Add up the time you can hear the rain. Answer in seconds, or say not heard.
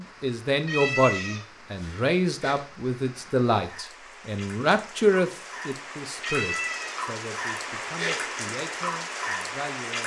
10 s.